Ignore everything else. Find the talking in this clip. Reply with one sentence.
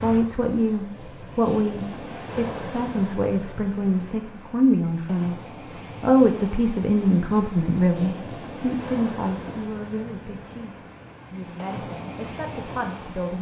You can hear the talking from 0.0 to 5.3 s and from 6.0 to 13.3 s.